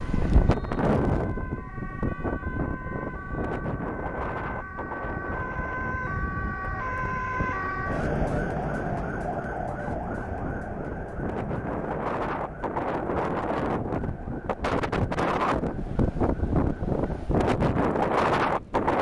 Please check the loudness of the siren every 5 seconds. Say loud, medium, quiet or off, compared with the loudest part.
medium, loud, medium, quiet.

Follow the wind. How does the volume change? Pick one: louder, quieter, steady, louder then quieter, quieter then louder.
quieter then louder.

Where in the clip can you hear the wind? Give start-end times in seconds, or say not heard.
0.0-18.9.